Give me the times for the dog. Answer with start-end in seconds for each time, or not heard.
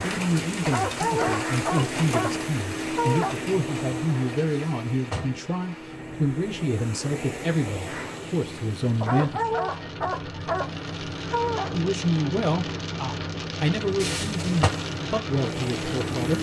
0.7-3.4, 9.0-11.8.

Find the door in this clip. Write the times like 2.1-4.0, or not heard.
4.5-5.5, 14.0-14.7.